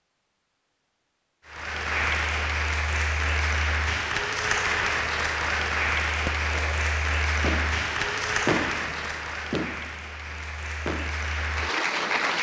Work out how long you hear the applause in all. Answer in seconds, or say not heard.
11 s.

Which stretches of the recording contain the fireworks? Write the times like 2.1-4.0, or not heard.
6.2-11.2.